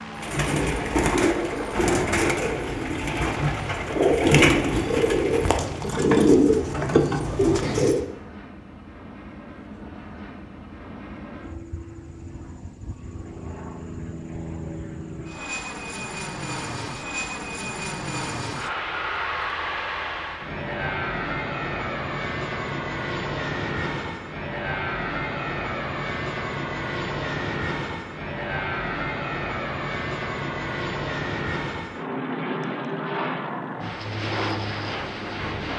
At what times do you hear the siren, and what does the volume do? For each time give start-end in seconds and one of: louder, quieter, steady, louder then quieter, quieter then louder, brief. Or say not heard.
not heard.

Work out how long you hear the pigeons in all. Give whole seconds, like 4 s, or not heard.
8 s.